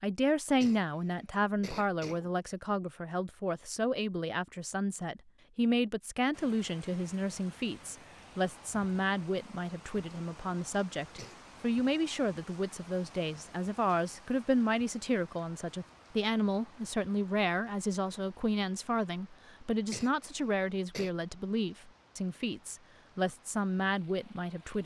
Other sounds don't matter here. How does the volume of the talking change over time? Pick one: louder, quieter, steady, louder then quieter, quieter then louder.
steady.